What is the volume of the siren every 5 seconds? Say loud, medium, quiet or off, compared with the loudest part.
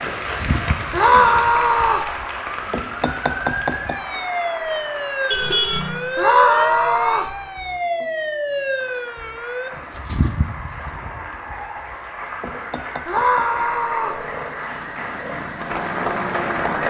loud, loud, medium, medium.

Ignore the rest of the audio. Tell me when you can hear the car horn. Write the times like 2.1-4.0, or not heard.
5.3-6.0.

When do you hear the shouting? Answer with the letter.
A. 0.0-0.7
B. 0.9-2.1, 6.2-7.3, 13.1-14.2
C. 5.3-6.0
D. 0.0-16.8
B.